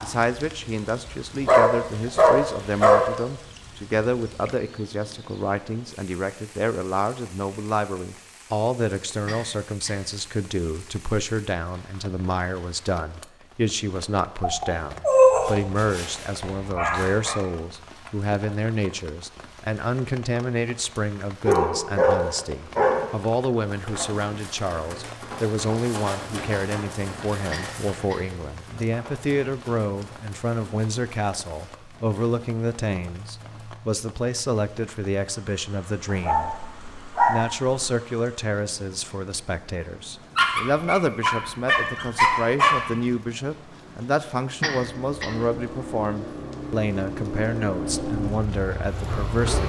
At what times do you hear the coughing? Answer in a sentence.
You can hear the coughing from 9.2 to 10.2 s, from 27.5 to 28.4 s and from 44.6 to 45.5 s.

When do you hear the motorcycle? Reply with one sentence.
You can hear the motorcycle from 44.8 to 49.6 s.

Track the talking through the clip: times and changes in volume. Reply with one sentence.
You can hear the talking from 0.0 to 49.6 s, at a steady volume.